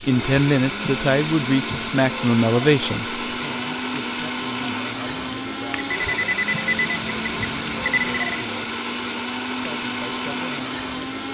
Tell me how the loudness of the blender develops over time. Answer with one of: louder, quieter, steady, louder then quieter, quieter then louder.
steady.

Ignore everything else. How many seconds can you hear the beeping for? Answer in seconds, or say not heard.
4 s.